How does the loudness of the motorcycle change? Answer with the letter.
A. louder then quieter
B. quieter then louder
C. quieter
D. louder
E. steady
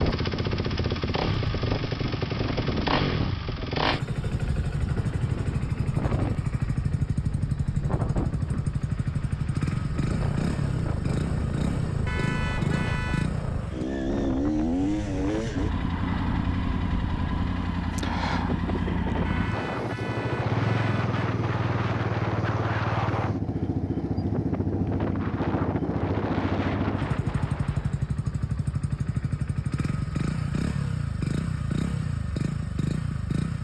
E.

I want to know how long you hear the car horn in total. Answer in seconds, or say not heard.
3 s.